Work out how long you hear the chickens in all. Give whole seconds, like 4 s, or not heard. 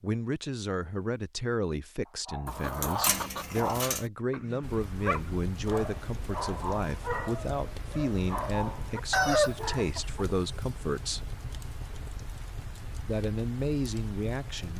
3 s.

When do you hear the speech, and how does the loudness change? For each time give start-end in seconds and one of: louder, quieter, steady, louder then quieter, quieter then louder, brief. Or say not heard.
0.0-11.3 steady
13.0-14.7 brief.